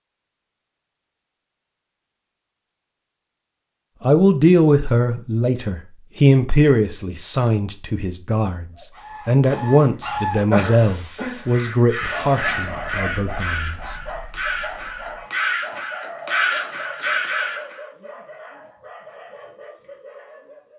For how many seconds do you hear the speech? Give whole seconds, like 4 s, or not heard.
10 s.